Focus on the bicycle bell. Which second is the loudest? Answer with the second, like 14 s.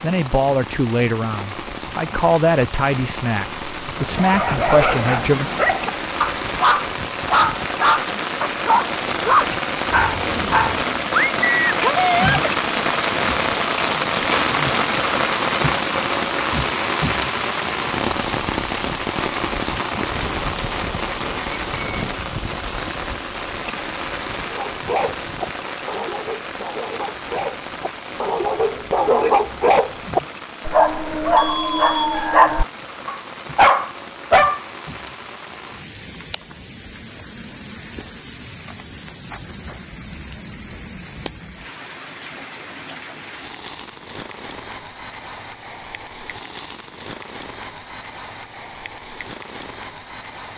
32 s.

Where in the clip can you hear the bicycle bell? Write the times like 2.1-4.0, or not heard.
20.1-22.1, 31.4-32.2.